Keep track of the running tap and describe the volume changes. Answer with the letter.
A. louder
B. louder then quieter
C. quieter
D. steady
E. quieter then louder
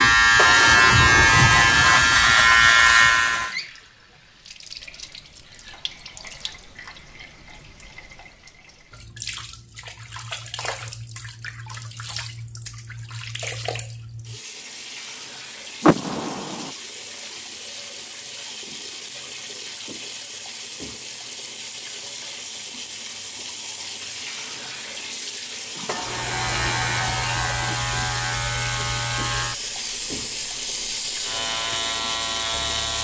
A.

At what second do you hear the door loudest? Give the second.
16 s.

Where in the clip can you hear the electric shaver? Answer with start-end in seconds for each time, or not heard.
0.0-3.5, 25.9-32.9.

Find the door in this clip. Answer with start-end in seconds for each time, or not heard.
0.3-2.0, 15.8-16.7, 25.9-27.8.